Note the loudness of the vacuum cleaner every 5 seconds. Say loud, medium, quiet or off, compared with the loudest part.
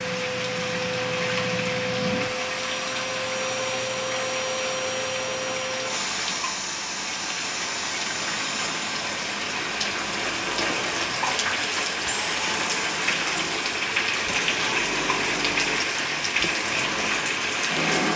loud, loud, medium, loud.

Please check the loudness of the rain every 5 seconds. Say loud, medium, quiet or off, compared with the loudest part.
medium, medium, loud, loud.